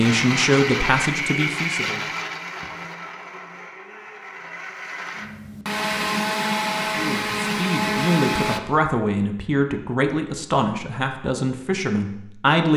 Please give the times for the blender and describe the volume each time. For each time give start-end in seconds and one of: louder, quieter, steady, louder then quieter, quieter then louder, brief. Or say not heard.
0.0-8.6 quieter then louder.